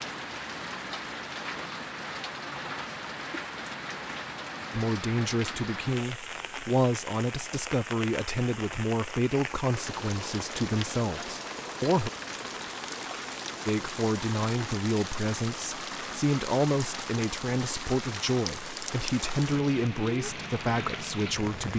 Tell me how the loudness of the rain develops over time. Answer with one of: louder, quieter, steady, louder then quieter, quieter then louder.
steady.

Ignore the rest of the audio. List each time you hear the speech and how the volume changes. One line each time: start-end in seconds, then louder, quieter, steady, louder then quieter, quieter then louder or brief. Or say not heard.
4.7-12.1 steady
13.7-21.7 steady.